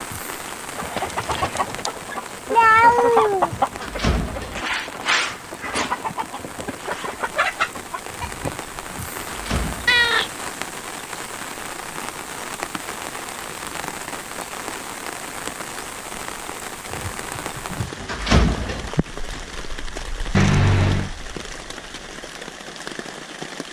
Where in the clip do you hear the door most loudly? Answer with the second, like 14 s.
18 s.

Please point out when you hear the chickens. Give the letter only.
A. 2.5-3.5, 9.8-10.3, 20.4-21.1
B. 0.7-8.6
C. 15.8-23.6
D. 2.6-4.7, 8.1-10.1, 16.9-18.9
B.